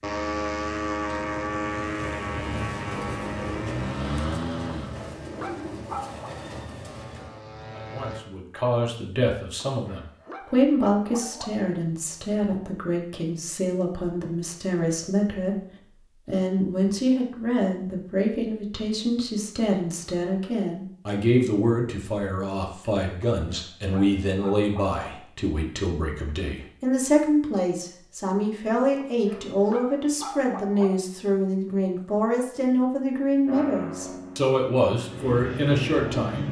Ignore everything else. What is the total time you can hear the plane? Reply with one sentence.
You can hear the plane for 11 seconds altogether.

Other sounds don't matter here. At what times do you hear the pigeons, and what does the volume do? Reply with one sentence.
The pigeons can be heard from 1.8 to 7.5 s, at a steady volume.